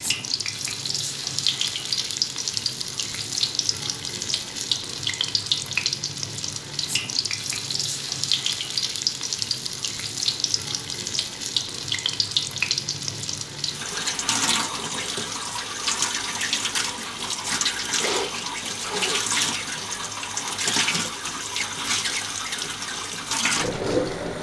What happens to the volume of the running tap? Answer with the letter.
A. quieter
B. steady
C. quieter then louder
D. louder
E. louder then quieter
B.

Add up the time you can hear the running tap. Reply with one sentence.
The running tap can be heard for 24 seconds in total.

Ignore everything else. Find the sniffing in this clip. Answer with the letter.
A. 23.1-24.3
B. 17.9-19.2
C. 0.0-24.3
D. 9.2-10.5
B.